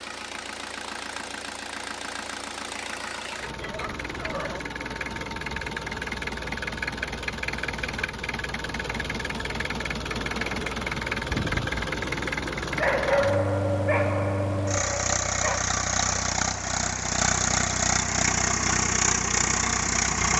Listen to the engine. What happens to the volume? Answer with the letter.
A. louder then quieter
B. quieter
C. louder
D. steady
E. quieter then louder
C.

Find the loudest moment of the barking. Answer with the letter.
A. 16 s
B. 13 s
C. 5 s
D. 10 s
B.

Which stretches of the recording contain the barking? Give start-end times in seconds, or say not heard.
3.6-4.6, 12.8-15.7.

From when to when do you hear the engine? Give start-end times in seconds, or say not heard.
0.0-20.3.